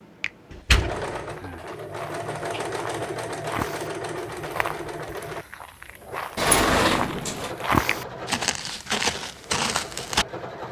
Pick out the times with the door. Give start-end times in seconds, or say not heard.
0.5-1.6, 6.3-7.5.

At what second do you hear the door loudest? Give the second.
7 s.